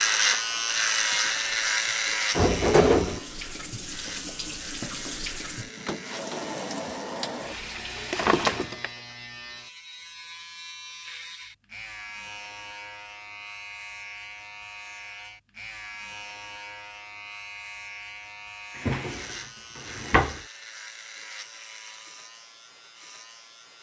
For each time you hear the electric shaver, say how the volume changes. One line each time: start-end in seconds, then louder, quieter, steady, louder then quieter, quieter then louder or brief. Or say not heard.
0.0-23.7 quieter.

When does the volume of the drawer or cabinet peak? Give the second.
3 s.